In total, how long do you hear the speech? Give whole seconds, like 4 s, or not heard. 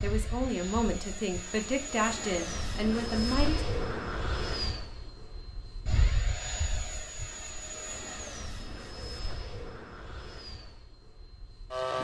4 s.